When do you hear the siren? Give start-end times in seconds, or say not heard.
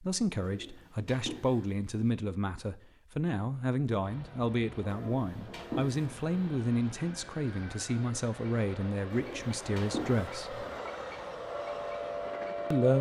11.5-12.9.